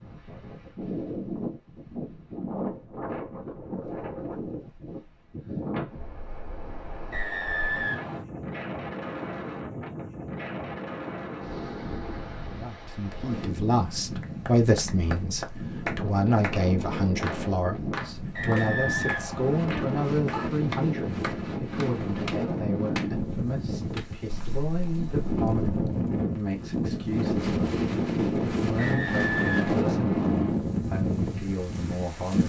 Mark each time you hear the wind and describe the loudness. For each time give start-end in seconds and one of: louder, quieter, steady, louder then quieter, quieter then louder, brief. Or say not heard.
0.0-32.4 louder.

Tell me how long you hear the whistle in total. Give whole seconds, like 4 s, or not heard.
5 s.